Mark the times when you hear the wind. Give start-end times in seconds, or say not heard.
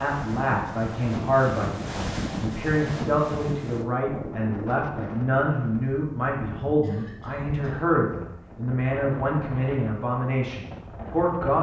0.0-11.5.